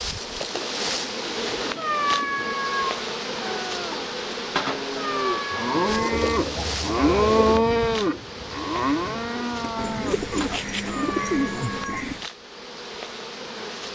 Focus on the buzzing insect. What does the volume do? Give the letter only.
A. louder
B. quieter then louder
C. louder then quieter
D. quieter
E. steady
D.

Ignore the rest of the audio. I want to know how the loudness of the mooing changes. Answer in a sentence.
The loudness of the mooing goes up, then down.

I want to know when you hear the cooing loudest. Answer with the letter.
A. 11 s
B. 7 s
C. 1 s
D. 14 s
A.